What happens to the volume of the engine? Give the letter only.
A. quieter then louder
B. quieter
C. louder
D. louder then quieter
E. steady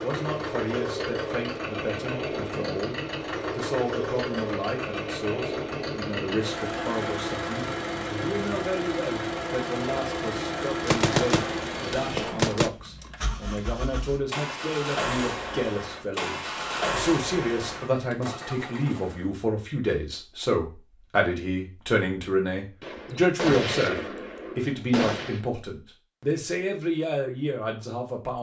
E.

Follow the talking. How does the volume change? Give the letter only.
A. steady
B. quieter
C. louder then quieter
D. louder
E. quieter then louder
D.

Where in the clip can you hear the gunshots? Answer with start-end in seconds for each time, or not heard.
10.8-12.7, 22.8-25.4.